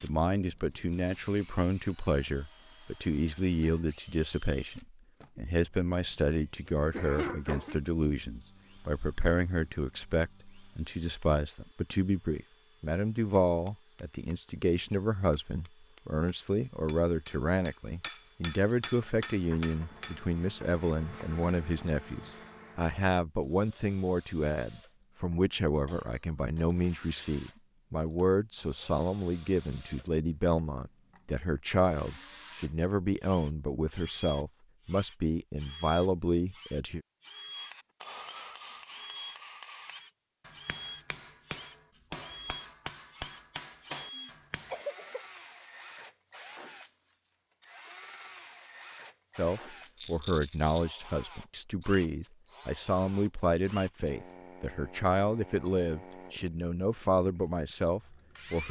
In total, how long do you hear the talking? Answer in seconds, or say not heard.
46 s.